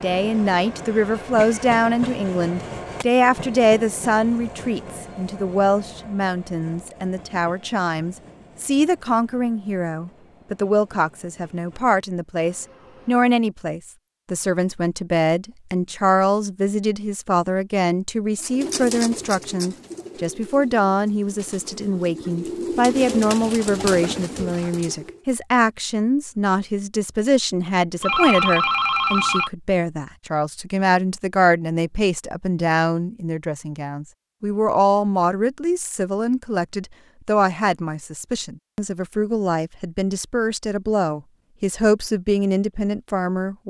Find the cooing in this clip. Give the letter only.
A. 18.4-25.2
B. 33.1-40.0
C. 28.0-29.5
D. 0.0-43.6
A.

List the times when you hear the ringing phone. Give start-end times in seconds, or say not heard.
28.0-29.5.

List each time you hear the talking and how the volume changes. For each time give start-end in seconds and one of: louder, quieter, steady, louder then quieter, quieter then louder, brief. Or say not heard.
0.0-43.6 steady.